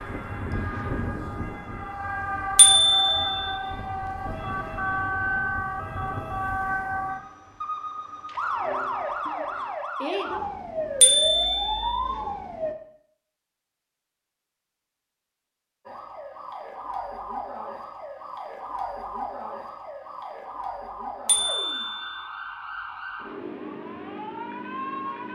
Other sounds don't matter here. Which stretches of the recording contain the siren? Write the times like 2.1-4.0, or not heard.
0.0-12.8, 15.8-25.3.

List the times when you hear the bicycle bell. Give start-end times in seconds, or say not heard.
2.5-3.5, 11.0-11.9, 21.2-22.2.